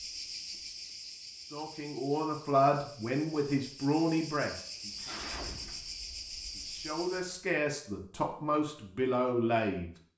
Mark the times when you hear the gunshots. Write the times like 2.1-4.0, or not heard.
4.8-5.9.